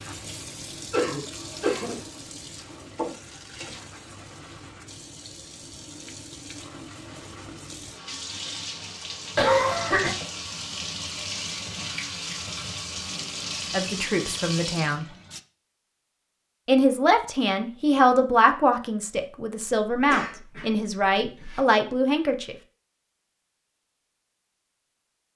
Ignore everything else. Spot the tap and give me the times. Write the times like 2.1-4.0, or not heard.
0.0-15.4.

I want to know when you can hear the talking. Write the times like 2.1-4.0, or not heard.
13.7-15.1, 16.6-22.6.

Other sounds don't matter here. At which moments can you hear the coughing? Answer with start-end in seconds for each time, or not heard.
0.9-1.9, 9.3-10.2, 19.9-21.6.